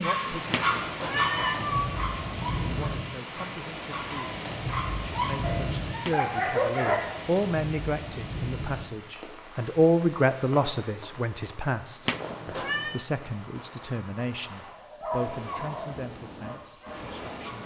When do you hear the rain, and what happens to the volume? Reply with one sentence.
The rain can be heard from 0.0 to 17.6 s, getting quieter.